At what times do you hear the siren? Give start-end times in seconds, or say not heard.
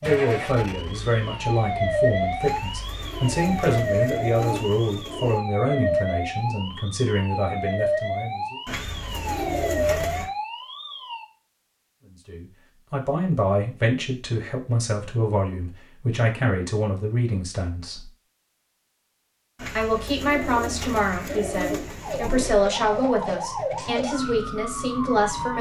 0.0-11.2, 22.0-25.5.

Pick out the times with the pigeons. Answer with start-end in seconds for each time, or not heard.
2.4-5.4, 8.7-10.3, 19.6-22.6.